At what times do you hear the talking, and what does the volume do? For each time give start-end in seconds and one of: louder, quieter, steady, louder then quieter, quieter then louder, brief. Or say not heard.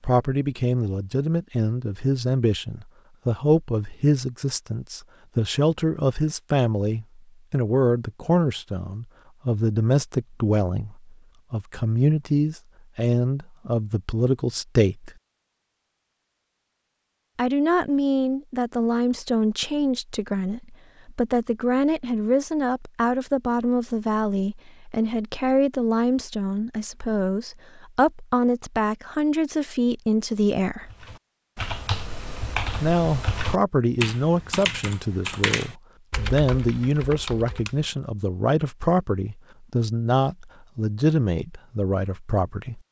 0.0-15.1 steady
17.4-30.9 steady
32.8-42.8 steady.